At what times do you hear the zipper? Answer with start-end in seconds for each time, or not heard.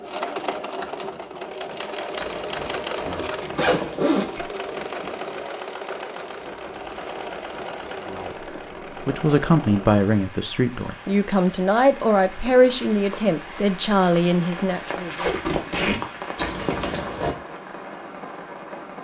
2.1-4.5, 16.4-17.4.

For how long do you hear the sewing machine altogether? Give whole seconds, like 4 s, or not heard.
10 s.